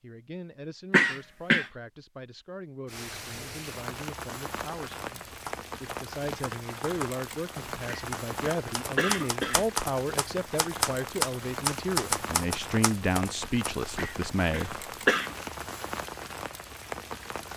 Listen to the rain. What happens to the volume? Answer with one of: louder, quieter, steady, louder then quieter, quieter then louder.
steady.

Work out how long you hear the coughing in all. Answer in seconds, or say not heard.
4 s.